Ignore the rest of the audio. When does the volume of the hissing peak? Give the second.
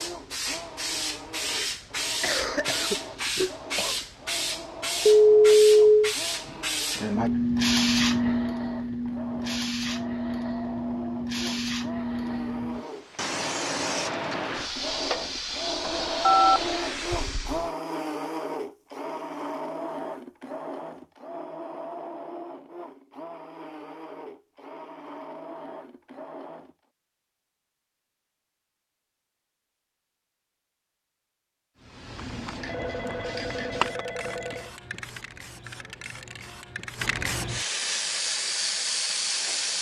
8 s.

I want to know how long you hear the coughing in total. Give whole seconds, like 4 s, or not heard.
2 s.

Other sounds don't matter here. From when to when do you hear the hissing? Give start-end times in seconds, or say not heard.
0.0-17.7, 31.8-39.7.